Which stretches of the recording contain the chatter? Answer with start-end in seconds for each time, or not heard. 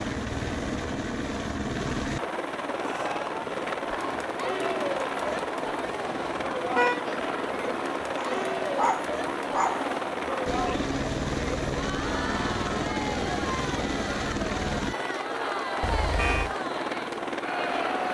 2.6-18.0.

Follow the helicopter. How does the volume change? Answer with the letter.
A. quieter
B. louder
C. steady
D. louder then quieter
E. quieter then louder
C.